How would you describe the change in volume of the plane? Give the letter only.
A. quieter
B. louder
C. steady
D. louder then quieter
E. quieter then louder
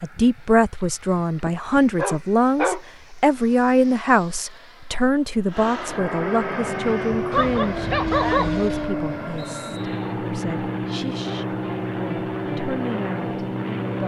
B.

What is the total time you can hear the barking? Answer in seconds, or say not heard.
3 s.